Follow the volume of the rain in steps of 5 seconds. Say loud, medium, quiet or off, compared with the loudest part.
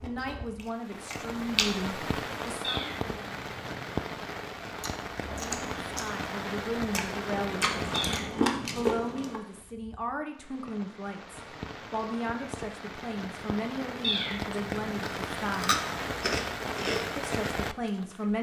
loud, loud, medium, loud.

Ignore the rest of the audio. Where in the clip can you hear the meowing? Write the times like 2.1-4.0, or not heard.
2.6-4.0, 7.9-8.9, 14.0-15.1.